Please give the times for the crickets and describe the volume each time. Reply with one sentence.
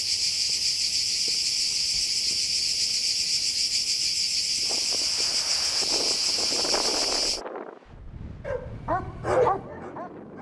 You can hear the crickets from 0.0 to 7.4 s, at a steady volume.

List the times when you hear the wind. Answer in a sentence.
You can hear the wind from 4.6 to 10.3 s.